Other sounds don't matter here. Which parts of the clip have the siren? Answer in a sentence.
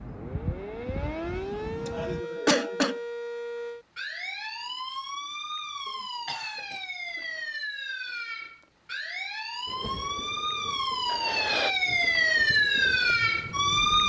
You can hear the siren from 0.1 to 14.0 s.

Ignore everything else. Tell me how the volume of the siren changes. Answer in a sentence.
The volume of the siren goes up.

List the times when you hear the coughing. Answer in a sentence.
The coughing can be heard from 1.9 to 3.0 s, from 5.8 to 7.2 s and from 11.1 to 11.8 s.